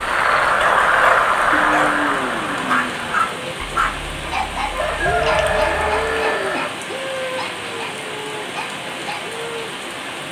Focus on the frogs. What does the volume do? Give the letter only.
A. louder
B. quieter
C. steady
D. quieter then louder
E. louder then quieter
B.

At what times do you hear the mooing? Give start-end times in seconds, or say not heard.
1.5-3.5, 5.2-6.7.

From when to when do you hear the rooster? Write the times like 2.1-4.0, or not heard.
4.7-6.7.